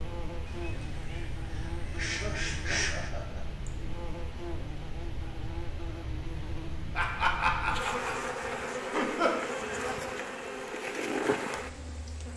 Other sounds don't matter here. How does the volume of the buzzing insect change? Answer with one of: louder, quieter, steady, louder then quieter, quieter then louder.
louder.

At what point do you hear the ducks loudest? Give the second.
3 s.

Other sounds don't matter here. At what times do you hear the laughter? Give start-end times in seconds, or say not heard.
2.1-3.7, 7.0-9.4.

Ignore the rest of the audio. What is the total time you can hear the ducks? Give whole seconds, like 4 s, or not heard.
3 s.